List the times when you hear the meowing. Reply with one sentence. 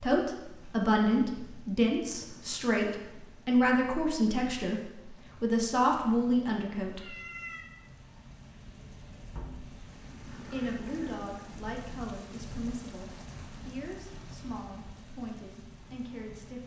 The meowing can be heard from 7.0 to 7.7 s.